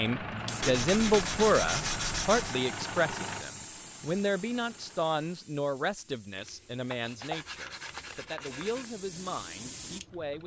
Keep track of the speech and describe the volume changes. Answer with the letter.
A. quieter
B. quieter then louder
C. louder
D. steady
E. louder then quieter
A.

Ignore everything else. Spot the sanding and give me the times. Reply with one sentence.
You can hear the sanding from 0.6 to 2.6 s and from 6.3 to 8.9 s.